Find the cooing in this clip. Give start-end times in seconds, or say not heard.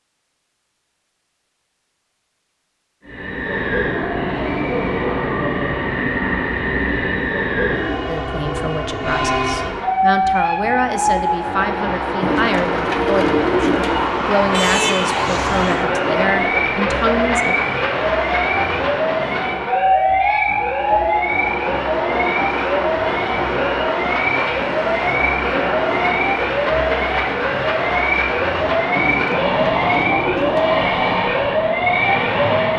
12.2-14.1, 28.9-30.9.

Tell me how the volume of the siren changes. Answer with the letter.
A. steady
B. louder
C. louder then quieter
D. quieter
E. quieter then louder
A.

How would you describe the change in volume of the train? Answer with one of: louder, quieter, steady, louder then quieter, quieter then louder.
steady.